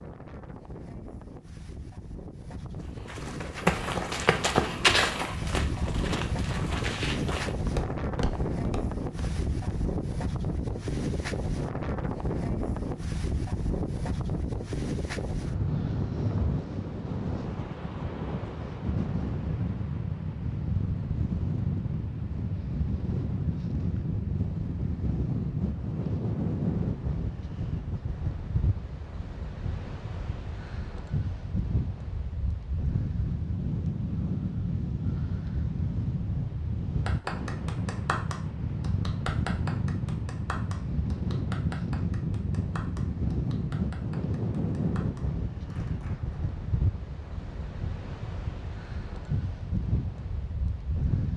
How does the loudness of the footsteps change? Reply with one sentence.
The volume of the footsteps goes down.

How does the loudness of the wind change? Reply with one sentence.
The volume of the wind stays about the same.